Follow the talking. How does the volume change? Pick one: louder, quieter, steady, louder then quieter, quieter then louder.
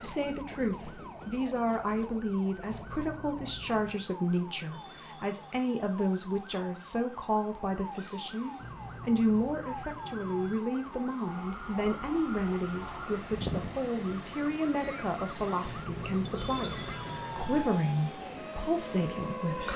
steady.